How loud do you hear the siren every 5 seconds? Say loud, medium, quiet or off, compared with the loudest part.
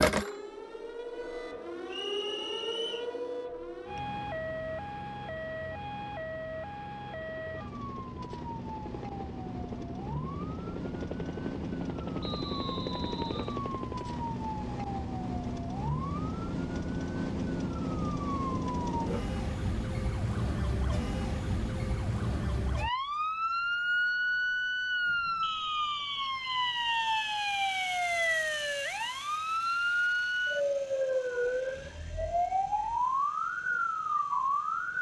medium, medium, medium, loud, loud, loud, loud.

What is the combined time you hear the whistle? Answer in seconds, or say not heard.
5 s.